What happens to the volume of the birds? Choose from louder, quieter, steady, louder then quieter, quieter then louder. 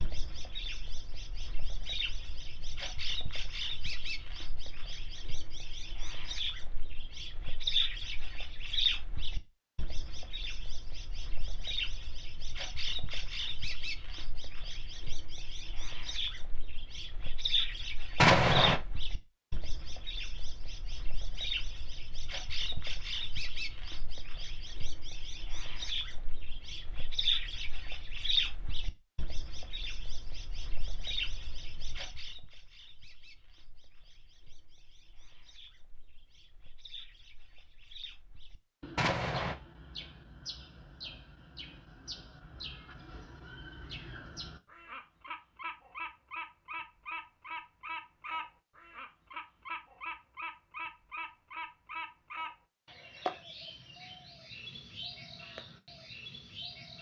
quieter then louder.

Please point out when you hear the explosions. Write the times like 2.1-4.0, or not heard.
18.2-18.8, 39.0-39.5.